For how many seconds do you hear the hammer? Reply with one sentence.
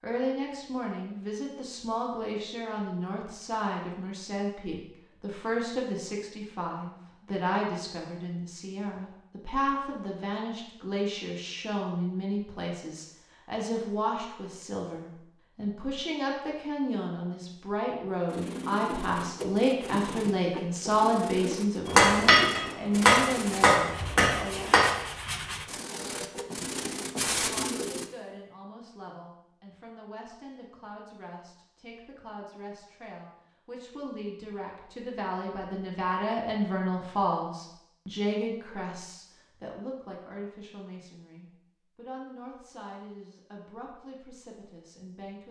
The hammer can be heard for 3 seconds in total.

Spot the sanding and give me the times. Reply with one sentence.
You can hear the sanding from 18.2 to 28.1 s.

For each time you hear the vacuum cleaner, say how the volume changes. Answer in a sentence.
The vacuum cleaner can't be heard in this clip.